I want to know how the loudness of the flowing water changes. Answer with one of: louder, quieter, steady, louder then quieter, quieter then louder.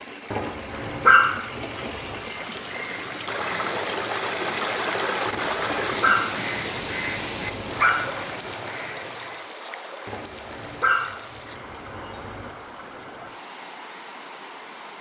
louder then quieter.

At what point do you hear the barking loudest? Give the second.
1 s.